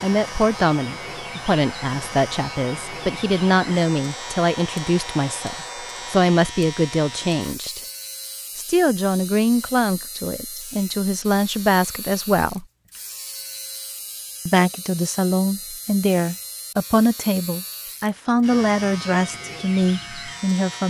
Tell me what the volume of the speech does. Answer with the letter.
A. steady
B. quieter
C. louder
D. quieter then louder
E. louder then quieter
A.